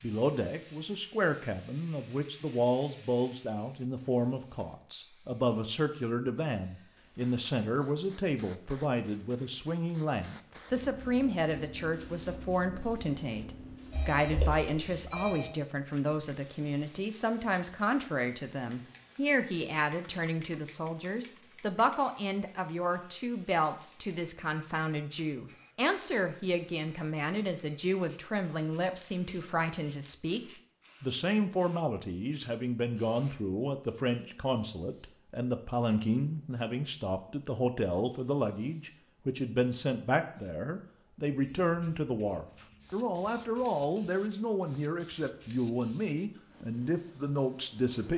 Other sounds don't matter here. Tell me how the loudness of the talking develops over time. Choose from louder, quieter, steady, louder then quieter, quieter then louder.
steady.